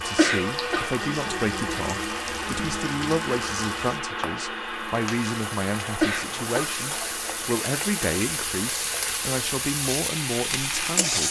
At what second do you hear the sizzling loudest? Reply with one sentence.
The loudest moment of the sizzling is at 11 seconds.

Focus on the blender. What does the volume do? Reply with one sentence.
The volume of the blender goes down.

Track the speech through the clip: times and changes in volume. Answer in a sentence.
The speech can be heard from 0.0 to 11.2 s, at a steady volume.